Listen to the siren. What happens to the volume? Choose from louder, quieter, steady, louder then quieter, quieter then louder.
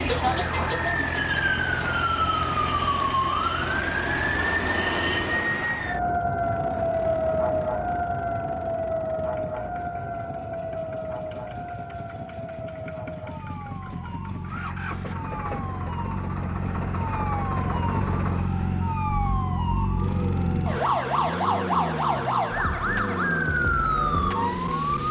quieter then louder.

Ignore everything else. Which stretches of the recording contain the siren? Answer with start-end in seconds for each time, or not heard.
0.0-25.0.